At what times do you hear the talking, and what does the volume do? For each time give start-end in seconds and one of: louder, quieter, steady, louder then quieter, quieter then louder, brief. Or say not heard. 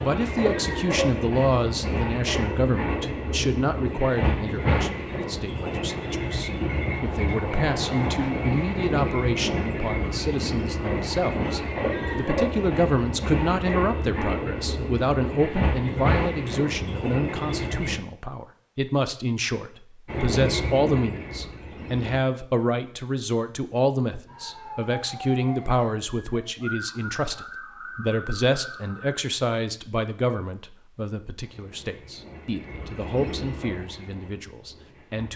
0.0-35.3 steady.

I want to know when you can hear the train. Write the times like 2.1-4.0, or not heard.
0.0-17.9, 20.1-22.2, 31.4-35.3.